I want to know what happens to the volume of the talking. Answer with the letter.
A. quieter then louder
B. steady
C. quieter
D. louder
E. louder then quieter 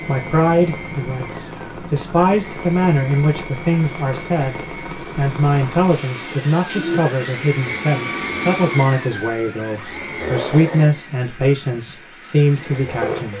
B.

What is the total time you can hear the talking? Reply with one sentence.
The talking can be heard for 13 seconds in total.